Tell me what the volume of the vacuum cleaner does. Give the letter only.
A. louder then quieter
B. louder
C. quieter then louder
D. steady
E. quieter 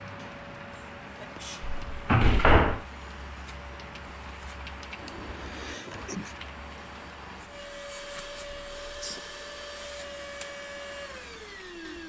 B.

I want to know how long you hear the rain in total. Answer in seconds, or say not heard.
12 s.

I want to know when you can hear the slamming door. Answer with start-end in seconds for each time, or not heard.
1.6-2.8.